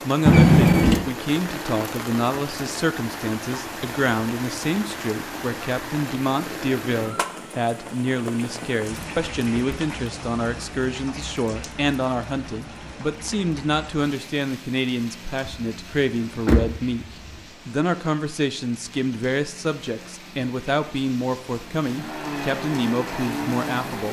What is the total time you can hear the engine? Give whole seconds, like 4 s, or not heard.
2 s.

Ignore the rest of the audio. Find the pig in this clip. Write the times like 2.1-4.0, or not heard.
not heard.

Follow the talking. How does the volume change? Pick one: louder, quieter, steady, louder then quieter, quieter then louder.
steady.